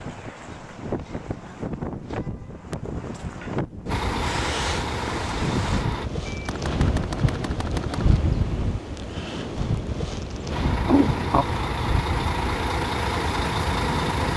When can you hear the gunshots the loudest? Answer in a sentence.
The volume of the gunshots peaks at 7 seconds.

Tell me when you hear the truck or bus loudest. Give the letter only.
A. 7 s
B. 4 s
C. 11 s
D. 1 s
C.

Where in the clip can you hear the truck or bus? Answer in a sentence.
You can hear the truck or bus from 3.9 to 6.0 s and from 10.5 to 14.3 s.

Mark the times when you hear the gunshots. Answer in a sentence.
The gunshots can be heard from 6.2 to 8.2 s.